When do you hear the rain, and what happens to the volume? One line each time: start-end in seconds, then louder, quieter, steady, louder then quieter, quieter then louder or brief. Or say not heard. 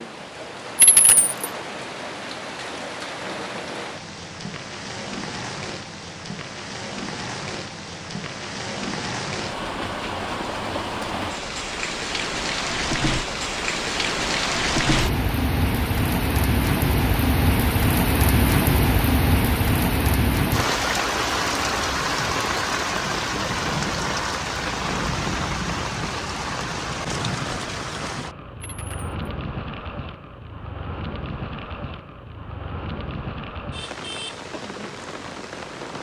0.0-35.9 louder then quieter.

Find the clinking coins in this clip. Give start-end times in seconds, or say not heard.
0.8-1.4, 28.6-29.1.